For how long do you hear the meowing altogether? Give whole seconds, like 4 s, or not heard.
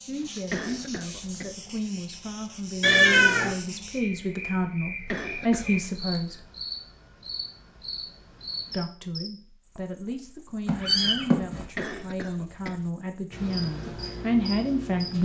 2 s.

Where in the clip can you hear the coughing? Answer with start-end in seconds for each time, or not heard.
0.5-1.5, 5.0-5.8, 11.8-12.9.